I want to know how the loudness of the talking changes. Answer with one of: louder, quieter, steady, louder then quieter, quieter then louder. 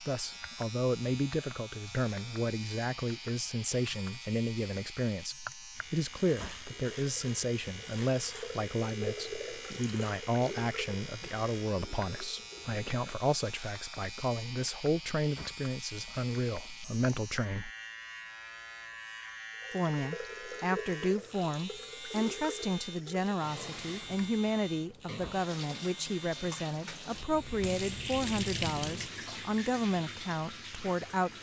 steady.